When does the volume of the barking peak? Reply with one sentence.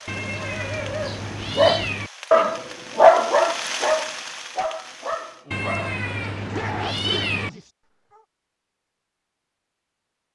The loudest moment of the barking is at 3 seconds.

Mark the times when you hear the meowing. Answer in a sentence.
The meowing can be heard from 0.1 to 2.1 s and from 5.5 to 7.5 s.